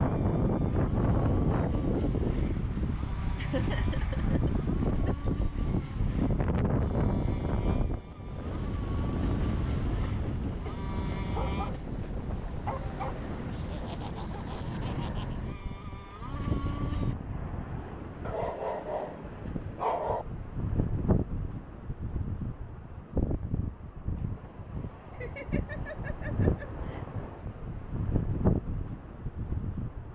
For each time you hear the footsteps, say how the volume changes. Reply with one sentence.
You can't hear the footsteps here.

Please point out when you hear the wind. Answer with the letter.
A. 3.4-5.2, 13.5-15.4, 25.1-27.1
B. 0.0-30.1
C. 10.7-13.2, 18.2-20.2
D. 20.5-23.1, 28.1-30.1
B.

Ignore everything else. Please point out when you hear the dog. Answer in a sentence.
You can hear the dog from 10.7 to 13.2 s and from 18.2 to 20.2 s.